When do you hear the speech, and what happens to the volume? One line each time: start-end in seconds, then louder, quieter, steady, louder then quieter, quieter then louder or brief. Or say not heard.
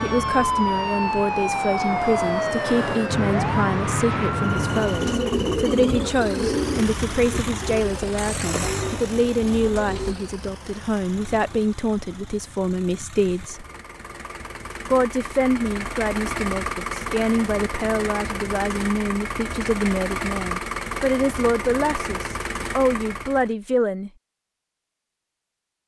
0.0-13.7 steady
14.8-24.1 steady.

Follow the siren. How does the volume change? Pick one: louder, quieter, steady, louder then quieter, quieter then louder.
steady.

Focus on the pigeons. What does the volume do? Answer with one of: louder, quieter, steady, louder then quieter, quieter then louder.
quieter.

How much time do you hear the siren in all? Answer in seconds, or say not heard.
5 s.